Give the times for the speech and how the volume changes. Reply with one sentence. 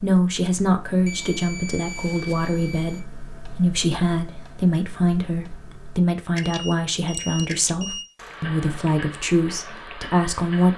You can hear the speech from 0.0 to 10.7 s, at a steady volume.